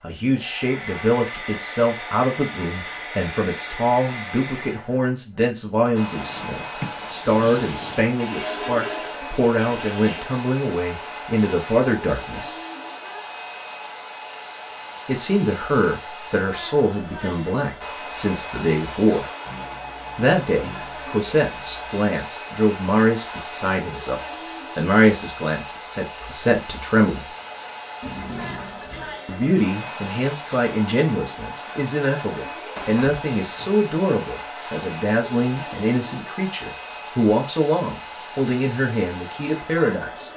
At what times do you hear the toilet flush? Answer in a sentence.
You can hear the toilet flush from 8.2 to 10.3 s, from 19.4 to 22.0 s and from 28.0 to 29.2 s.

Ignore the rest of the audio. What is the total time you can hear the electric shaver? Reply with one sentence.
You can't hear the electric shaver here.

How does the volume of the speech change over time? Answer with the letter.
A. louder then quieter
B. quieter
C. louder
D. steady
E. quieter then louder
D.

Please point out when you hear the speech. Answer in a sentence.
The speech can be heard from 0.0 to 12.6 s, from 15.1 to 19.3 s, from 20.1 to 27.3 s and from 29.2 to 40.3 s.